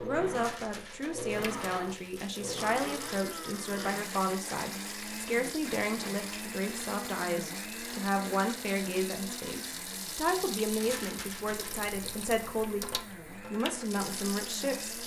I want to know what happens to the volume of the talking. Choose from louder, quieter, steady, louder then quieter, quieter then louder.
steady.